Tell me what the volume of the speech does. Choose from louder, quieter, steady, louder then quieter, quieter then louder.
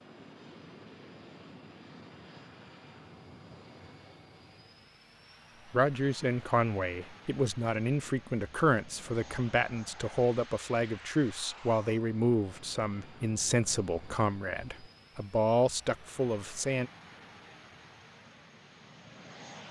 steady.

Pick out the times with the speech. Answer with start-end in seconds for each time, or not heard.
5.7-16.9.